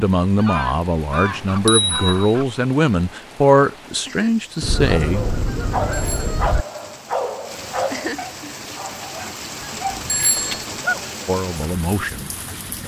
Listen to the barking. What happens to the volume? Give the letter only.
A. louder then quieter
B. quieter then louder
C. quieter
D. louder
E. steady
C.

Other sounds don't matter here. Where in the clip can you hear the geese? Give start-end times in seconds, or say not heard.
0.3-2.6, 4.6-6.7, 9.6-11.1.